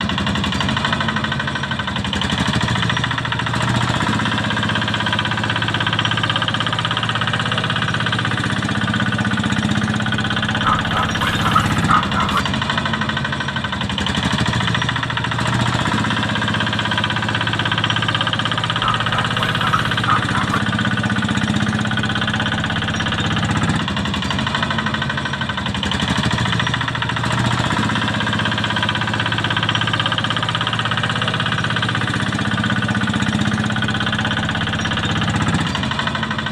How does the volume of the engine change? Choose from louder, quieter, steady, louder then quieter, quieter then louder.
steady.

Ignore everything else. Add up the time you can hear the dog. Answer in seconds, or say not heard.
4 s.